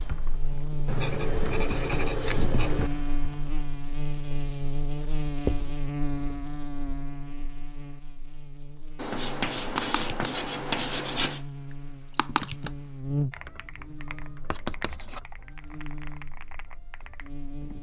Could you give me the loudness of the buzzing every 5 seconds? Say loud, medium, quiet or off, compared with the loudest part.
loud, loud, loud, medium.